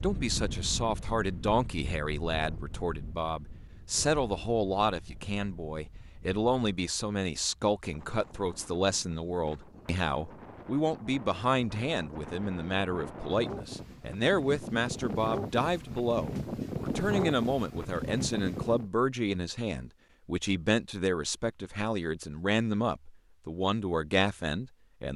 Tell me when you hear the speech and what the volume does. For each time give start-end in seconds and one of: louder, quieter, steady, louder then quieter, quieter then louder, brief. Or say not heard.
0.0-25.1 steady.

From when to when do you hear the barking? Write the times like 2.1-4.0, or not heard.
not heard.